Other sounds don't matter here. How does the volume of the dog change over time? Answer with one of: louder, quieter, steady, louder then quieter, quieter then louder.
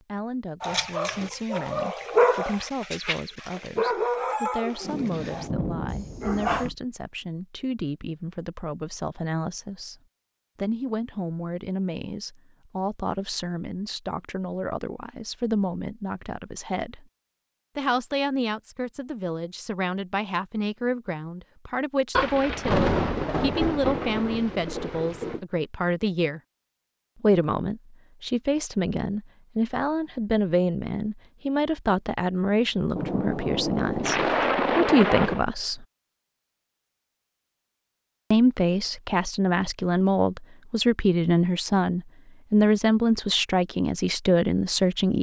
louder then quieter.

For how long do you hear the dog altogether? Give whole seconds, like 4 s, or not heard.
6 s.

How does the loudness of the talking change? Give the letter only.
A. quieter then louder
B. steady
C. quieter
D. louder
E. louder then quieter
D.